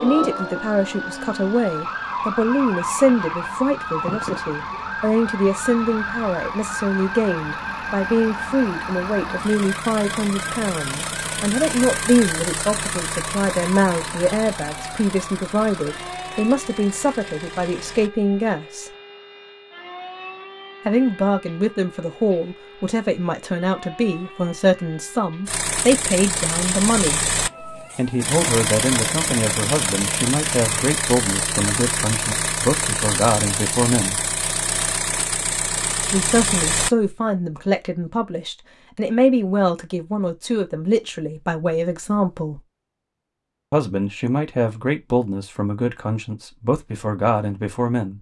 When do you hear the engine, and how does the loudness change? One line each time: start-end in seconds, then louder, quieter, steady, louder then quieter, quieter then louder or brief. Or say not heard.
0.0-18.2 louder then quieter
25.4-37.1 steady.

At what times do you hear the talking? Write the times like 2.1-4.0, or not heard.
0.0-18.9, 20.9-27.2, 27.9-34.2, 36.1-42.6, 43.7-48.1.